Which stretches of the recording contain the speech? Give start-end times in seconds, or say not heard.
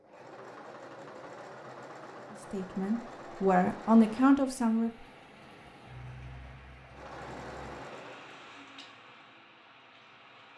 2.5-4.9.